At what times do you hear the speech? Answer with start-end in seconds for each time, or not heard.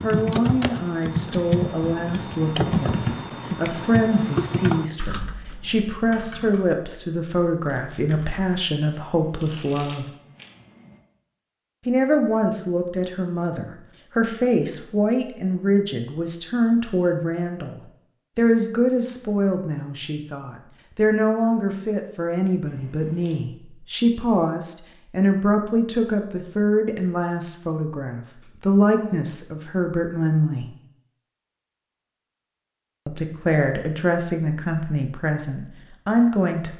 0.0-10.1, 11.8-30.6, 33.0-36.7.